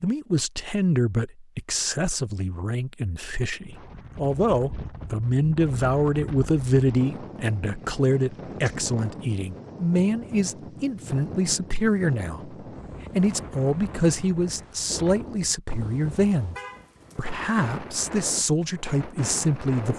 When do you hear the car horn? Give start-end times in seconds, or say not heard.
16.6-17.3.